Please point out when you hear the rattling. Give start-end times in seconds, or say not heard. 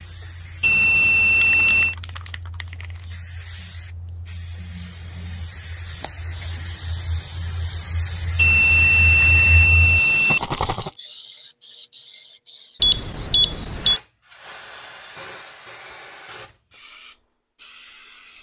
10.2-10.9.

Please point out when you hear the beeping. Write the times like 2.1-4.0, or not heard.
0.6-1.9, 8.3-10.4, 12.8-14.0.